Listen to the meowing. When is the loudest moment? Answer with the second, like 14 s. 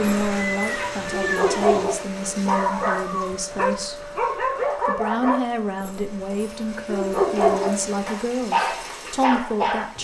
1 s.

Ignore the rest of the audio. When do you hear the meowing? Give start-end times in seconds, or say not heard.
0.0-1.9.